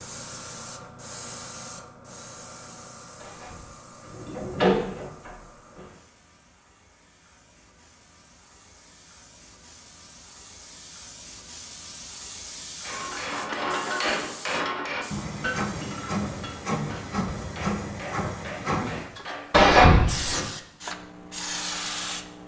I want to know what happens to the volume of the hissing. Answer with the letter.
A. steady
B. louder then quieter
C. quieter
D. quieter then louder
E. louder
D.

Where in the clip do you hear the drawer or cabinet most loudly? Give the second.
20 s.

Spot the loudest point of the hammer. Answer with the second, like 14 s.
14 s.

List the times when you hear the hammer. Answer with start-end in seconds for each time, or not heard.
12.8-19.8.